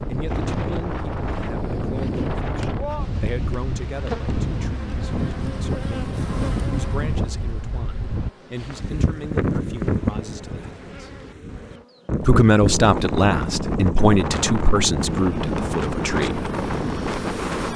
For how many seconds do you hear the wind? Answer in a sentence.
You can hear the wind for 18 seconds altogether.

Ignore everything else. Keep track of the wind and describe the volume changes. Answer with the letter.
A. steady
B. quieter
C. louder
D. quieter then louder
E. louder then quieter
A.